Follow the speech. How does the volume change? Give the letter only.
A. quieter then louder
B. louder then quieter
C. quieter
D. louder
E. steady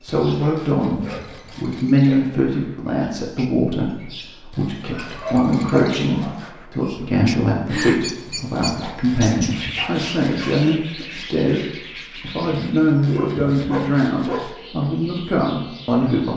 E.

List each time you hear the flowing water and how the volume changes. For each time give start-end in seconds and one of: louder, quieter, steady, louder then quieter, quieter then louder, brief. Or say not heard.
not heard.